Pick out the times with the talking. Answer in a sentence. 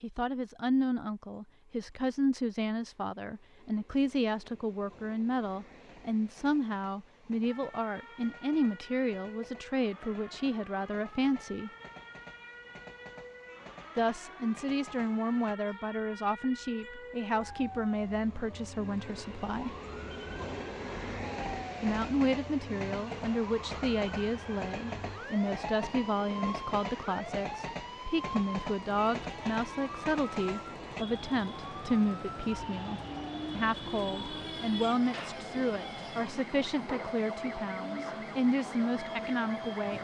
The talking can be heard from 0.0 to 11.7 s, from 13.9 to 19.8 s and from 21.8 to 39.9 s.